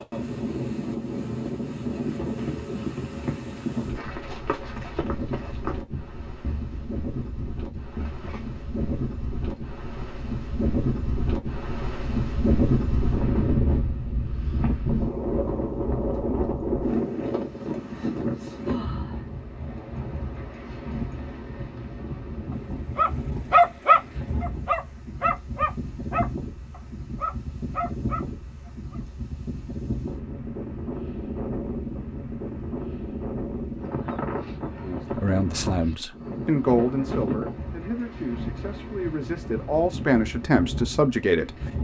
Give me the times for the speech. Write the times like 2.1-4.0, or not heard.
34.8-41.5.